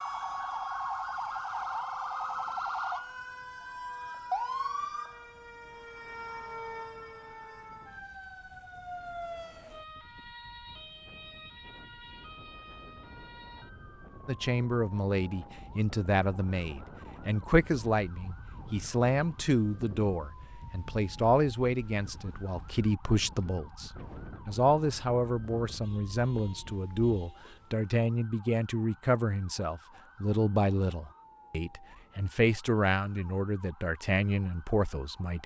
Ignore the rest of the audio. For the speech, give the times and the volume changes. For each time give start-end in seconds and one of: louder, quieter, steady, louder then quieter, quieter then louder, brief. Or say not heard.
14.2-35.4 steady.